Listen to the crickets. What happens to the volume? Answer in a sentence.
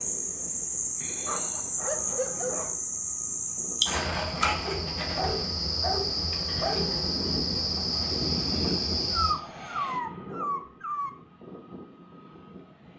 The loudness of the crickets stays about the same.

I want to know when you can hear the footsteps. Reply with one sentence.
The footsteps can't be heard in this clip.